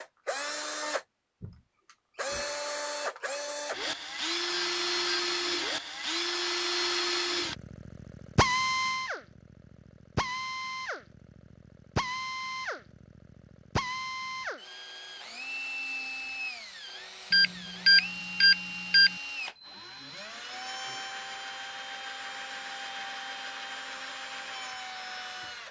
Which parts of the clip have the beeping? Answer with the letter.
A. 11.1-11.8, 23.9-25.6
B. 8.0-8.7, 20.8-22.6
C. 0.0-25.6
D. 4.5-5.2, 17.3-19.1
D.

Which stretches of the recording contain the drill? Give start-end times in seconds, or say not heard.
0.0-25.6.